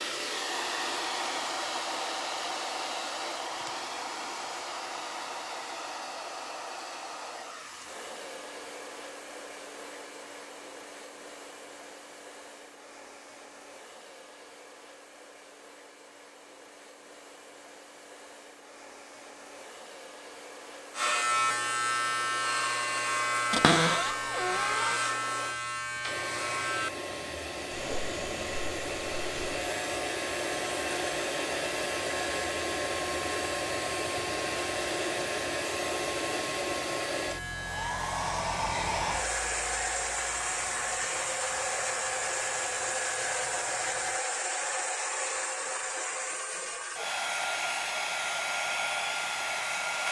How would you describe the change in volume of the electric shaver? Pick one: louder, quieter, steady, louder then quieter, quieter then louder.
quieter.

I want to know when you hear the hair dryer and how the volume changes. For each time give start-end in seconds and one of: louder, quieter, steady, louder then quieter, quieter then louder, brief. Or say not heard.
0.0-50.0 quieter then louder.